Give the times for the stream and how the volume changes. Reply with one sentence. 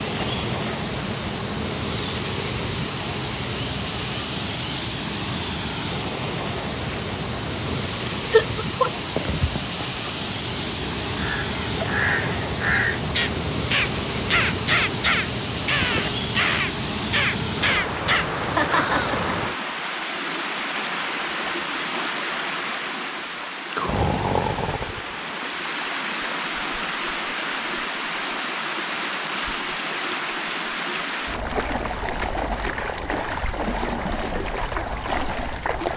You can hear the stream from 0.0 to 35.9 s, at a steady volume.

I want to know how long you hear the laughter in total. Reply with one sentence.
The laughter can be heard for 2 seconds in total.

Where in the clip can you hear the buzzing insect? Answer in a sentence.
You can hear the buzzing insect from 0.0 to 17.8 s.